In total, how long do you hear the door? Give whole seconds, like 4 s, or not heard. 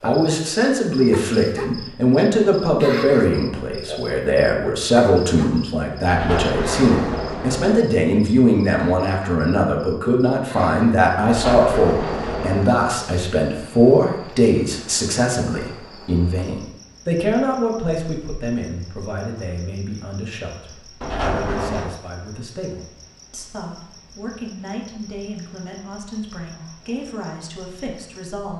4 s.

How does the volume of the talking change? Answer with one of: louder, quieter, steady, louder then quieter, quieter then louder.
quieter.